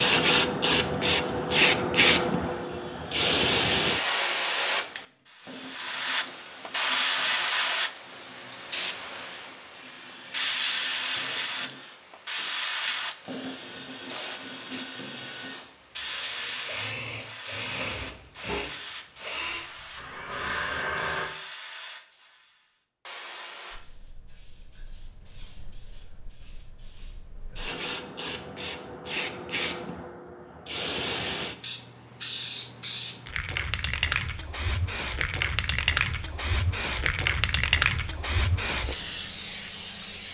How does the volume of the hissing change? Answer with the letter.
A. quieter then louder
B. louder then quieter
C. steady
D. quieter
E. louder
A.